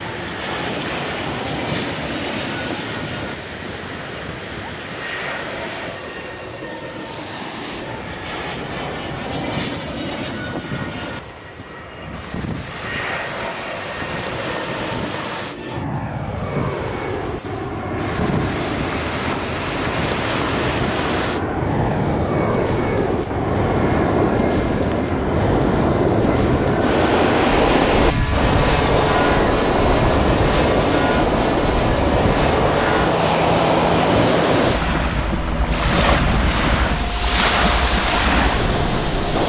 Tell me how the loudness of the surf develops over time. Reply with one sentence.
The volume of the surf goes up.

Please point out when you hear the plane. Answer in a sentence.
You can hear the plane from 0.0 to 39.4 s.